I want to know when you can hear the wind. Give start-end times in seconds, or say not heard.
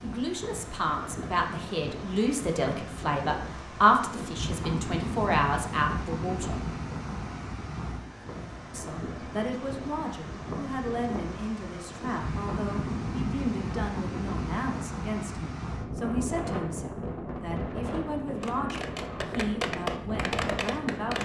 0.0-21.1.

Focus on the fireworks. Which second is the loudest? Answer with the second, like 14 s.
20 s.